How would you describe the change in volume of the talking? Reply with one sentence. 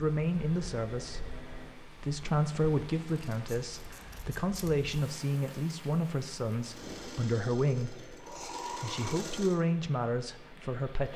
The volume of the talking stays about the same.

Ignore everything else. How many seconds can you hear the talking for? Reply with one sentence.
You can hear the talking for 11 seconds altogether.